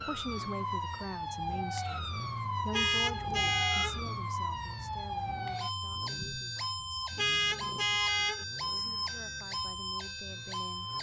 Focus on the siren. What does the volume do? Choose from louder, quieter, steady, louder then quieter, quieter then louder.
steady.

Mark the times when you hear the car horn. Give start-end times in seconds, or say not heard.
2.7-4.0, 7.2-8.4.